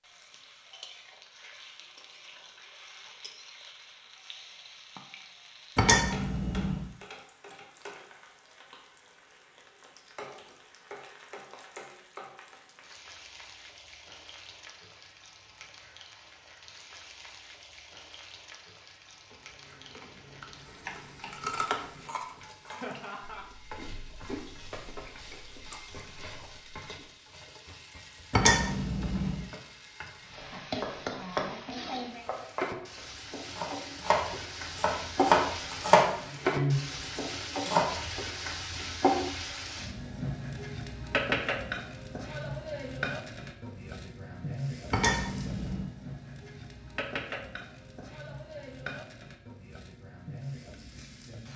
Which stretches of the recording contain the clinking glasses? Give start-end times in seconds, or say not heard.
5.8-6.9, 28.3-29.4, 44.9-45.9.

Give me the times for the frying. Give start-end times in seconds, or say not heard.
0.0-51.5.